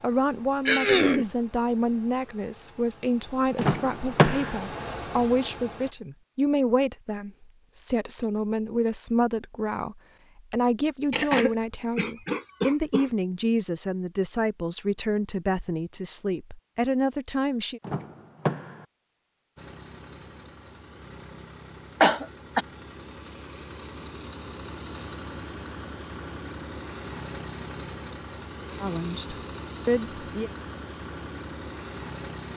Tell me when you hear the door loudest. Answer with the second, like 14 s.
4 s.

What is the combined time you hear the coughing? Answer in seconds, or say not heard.
3 s.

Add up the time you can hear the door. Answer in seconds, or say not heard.
2 s.